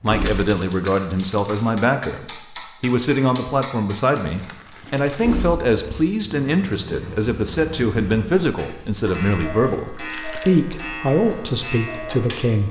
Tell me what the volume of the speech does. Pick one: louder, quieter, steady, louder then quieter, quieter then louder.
steady.